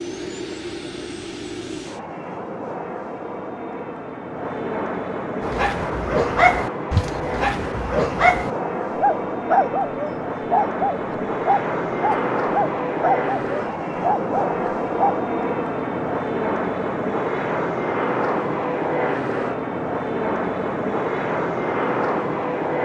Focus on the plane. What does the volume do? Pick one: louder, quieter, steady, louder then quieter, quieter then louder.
louder.